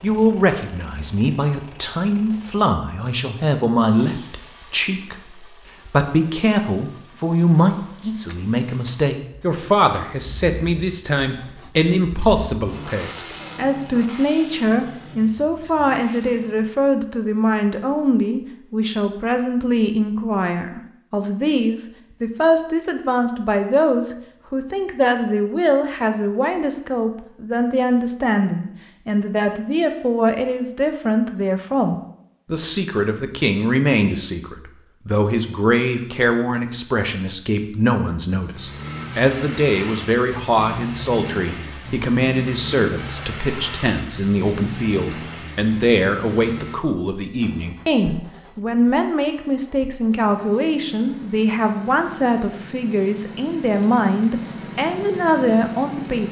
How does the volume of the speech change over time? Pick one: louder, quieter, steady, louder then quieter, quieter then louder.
steady.